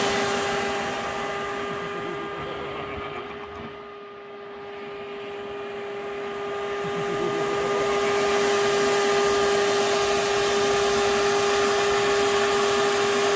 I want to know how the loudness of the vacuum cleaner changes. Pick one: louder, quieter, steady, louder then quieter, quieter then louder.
quieter then louder.